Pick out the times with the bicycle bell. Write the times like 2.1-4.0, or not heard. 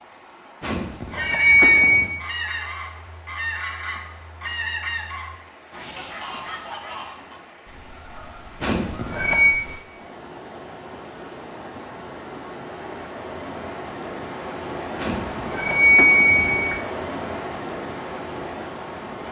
0.6-2.1, 8.6-9.6, 14.9-16.8.